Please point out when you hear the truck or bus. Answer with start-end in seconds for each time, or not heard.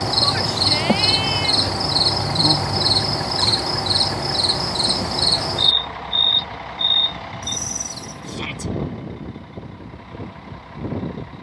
0.0-11.3.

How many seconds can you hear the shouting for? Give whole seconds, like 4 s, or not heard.
2 s.